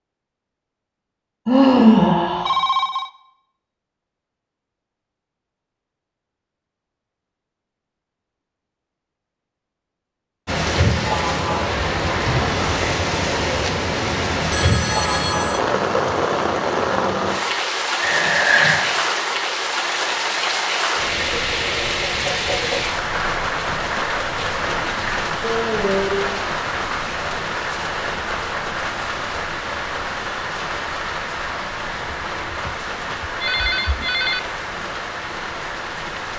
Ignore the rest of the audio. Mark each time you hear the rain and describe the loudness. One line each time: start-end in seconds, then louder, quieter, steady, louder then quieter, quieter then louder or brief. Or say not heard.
10.4-36.3 quieter.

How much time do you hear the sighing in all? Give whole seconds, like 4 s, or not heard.
3 s.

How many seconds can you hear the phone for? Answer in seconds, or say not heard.
4 s.